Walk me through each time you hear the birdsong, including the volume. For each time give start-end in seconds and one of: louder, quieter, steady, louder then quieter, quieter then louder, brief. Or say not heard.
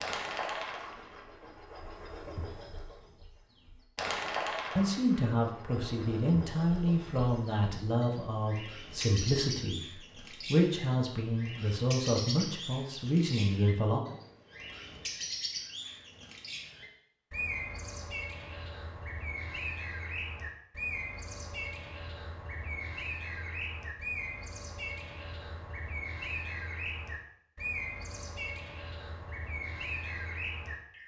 0.0-31.0 steady.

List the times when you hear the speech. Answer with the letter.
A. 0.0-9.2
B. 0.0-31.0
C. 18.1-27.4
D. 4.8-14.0
D.